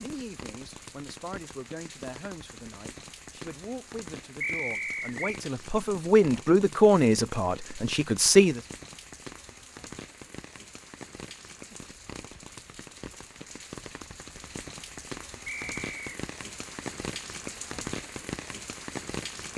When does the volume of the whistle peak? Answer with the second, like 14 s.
5 s.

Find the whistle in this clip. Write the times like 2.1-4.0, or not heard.
4.4-5.4, 15.4-16.1.